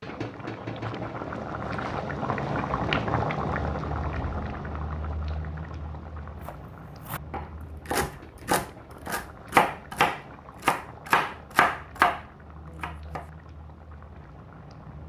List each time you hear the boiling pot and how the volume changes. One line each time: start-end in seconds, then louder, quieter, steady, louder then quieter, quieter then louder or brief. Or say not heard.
0.0-15.0 quieter.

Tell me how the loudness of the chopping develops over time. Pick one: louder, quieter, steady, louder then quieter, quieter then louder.
louder.